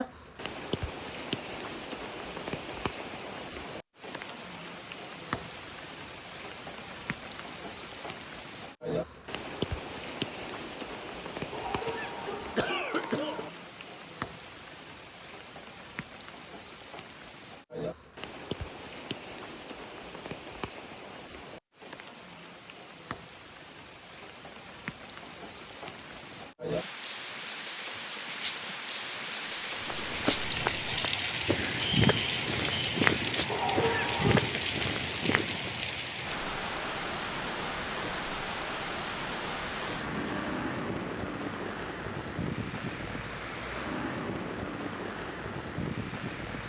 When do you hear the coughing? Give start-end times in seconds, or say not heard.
11.5-13.5, 33.5-34.6.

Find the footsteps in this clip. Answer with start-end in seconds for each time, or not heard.
29.9-35.8.